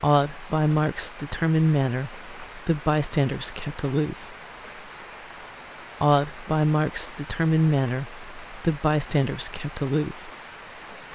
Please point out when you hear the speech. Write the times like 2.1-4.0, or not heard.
0.0-4.3, 6.0-10.3.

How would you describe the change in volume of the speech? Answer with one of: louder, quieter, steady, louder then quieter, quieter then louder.
steady.